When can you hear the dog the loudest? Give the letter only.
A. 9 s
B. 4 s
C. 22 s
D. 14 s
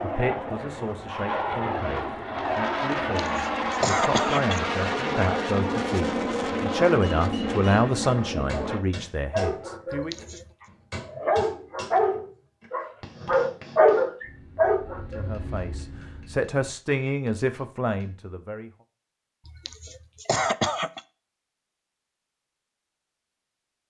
D.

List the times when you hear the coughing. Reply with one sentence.
The coughing can be heard from 3.2 to 4.7 s, from 9.9 to 10.4 s and from 19.4 to 21.0 s.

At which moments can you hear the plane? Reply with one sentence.
You can hear the plane from 0.0 to 8.8 s and from 14.2 to 16.6 s.